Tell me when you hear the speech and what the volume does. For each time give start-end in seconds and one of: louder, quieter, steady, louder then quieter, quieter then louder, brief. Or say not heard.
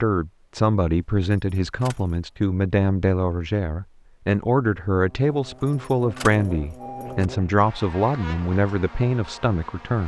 0.0-10.0 steady.